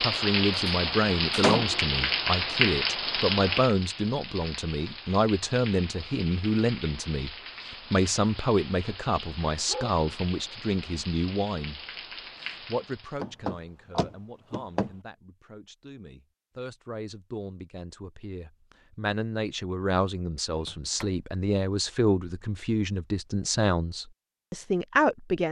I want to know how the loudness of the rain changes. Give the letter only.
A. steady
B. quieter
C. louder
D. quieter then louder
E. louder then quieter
B.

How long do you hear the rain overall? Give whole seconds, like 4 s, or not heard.
13 s.